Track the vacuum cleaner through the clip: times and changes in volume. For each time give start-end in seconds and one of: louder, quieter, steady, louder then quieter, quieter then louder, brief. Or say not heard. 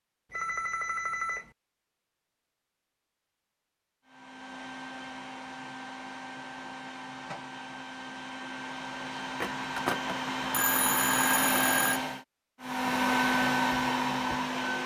4.0-14.8 louder.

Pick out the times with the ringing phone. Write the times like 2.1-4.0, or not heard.
0.3-1.5, 9.4-12.0.